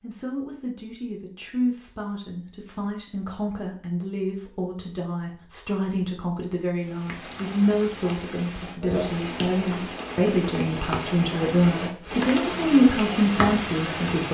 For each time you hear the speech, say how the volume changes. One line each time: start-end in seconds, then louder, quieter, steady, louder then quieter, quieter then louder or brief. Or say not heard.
0.0-14.2 louder.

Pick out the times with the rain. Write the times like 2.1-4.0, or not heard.
6.8-14.2.